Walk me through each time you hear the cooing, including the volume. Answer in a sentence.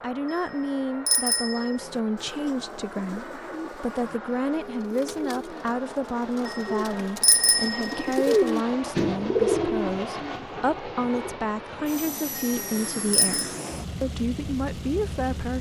The cooing can be heard from 1.8 to 11.3 s, getting louder.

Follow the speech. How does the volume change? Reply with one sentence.
The volume of the speech stays about the same.